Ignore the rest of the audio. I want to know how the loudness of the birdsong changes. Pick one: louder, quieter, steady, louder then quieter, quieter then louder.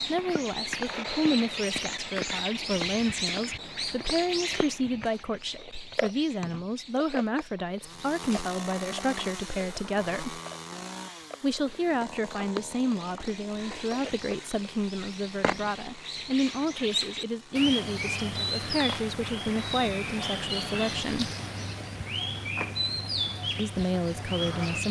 quieter then louder.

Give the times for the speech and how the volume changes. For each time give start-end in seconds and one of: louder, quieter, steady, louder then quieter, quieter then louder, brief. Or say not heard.
0.1-10.4 steady
11.4-21.3 steady
23.6-24.8 brief.